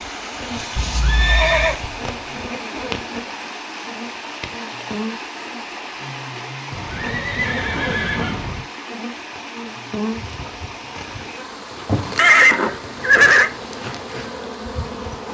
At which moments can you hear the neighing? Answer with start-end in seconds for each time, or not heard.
0.8-1.8, 6.7-8.7, 12.2-13.5.